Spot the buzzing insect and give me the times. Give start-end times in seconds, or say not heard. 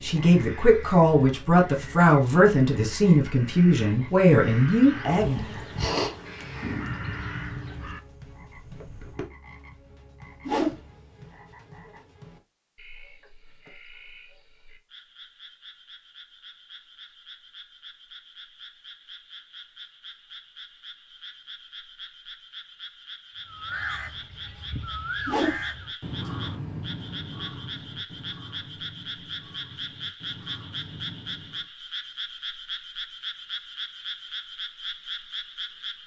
5.2-9.2.